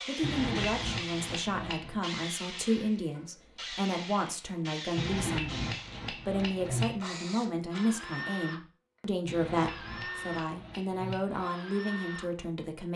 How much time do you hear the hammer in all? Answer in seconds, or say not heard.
6 s.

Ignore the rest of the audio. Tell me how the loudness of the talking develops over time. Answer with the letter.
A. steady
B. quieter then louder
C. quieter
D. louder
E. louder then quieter
A.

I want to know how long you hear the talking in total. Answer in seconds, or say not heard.
13 s.